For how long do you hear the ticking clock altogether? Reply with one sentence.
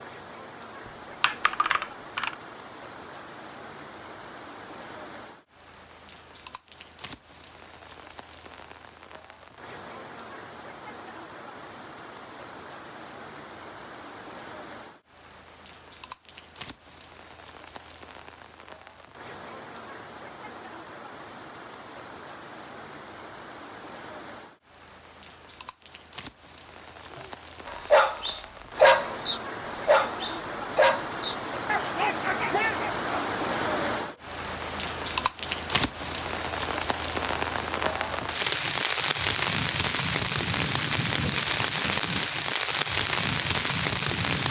You can't hear the ticking clock here.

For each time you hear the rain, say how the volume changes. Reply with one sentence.
You can hear the rain from 0.0 to 44.4 s, getting louder.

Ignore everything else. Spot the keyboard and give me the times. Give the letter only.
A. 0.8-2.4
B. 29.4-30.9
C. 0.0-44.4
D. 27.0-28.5
A.